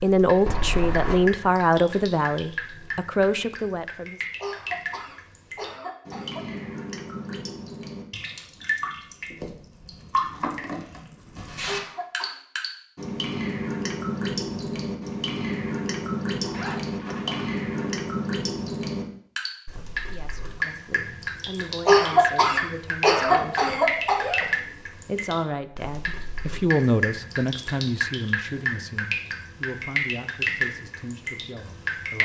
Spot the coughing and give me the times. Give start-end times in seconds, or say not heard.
4.4-6.7, 11.7-12.3, 21.9-24.3.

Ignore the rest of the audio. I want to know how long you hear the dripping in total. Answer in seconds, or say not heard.
32 s.